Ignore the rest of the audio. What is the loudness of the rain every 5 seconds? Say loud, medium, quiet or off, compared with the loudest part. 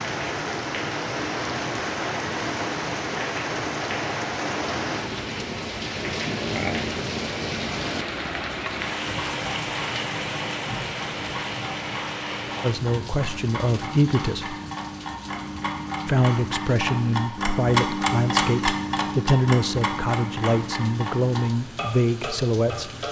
loud, loud, medium, quiet, quiet.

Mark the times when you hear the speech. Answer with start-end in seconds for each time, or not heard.
12.6-14.6, 16.1-22.9.